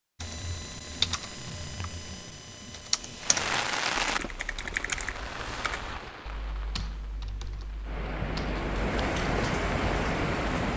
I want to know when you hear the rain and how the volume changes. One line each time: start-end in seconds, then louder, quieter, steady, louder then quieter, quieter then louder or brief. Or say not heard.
3.2-10.7 quieter then louder.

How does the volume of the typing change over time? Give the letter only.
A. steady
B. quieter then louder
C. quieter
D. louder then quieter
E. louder
C.